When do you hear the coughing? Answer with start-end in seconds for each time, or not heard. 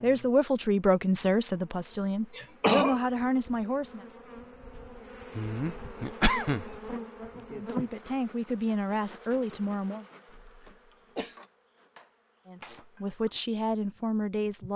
1.9-3.0, 5.3-7.0, 10.3-11.4.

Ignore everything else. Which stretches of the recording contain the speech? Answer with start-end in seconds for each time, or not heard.
0.0-4.0, 7.5-10.1, 12.4-14.7.